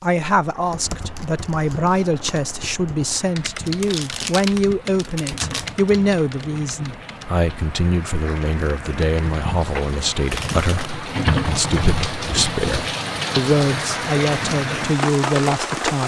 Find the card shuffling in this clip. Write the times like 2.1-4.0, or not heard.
3.8-5.7, 9.8-10.9.